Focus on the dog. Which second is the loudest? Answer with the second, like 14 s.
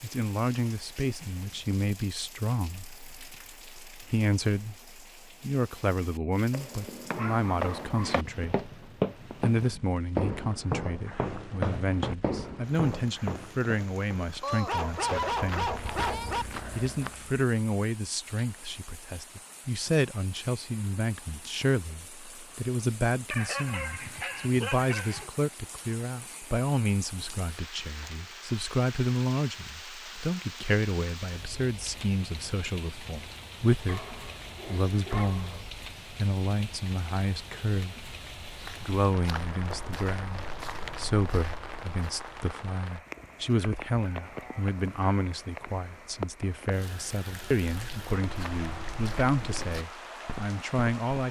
15 s.